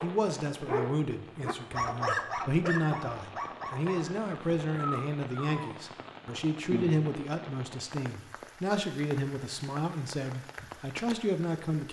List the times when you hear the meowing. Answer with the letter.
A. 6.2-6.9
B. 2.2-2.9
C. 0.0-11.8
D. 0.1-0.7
A.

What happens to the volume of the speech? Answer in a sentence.
The loudness of the speech stays about the same.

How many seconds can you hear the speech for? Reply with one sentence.
The speech can be heard for 12 seconds in total.